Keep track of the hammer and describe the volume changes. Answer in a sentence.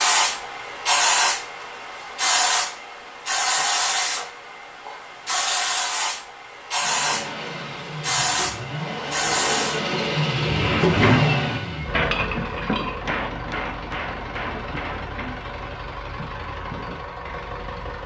The volume of the hammer goes down.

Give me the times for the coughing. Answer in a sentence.
The coughing can't be heard in this clip.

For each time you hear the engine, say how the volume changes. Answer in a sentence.
You can hear the engine from 6.8 to 18.0 s, getting louder then quieter.